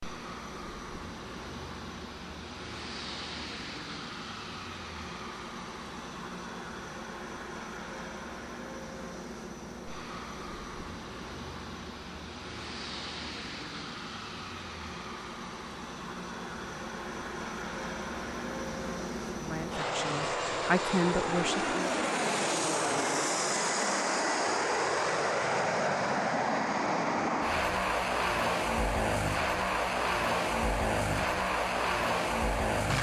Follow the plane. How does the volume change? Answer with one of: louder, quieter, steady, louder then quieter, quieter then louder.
louder.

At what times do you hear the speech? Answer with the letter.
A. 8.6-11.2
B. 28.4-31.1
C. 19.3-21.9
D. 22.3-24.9
C.